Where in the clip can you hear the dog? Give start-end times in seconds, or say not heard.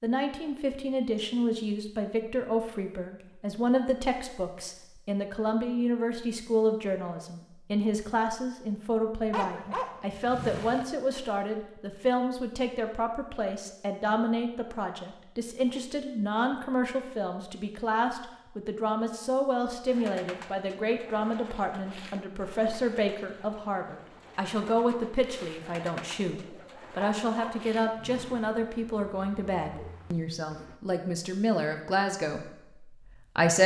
9.3-10.8, 27.2-28.5.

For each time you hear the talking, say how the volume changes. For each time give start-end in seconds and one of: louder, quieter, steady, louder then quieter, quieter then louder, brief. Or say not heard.
0.0-33.6 steady.